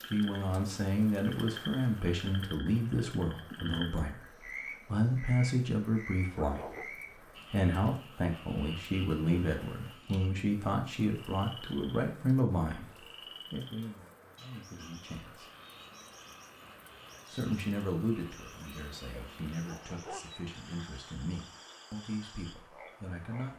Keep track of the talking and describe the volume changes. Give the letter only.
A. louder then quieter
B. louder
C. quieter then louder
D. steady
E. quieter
E.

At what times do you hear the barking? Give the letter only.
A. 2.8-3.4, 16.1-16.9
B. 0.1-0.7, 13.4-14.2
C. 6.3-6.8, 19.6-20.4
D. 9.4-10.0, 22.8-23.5
C.